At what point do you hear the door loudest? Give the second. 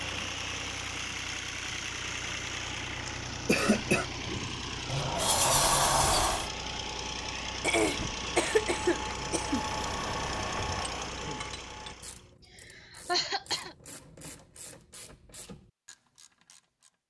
6 s.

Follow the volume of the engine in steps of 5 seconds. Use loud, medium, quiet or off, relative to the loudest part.
loud, loud, loud, off.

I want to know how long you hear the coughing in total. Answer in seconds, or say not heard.
4 s.